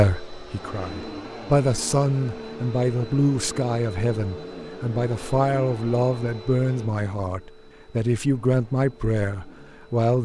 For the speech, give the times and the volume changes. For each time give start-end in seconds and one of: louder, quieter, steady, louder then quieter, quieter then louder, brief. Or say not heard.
0.0-10.2 steady.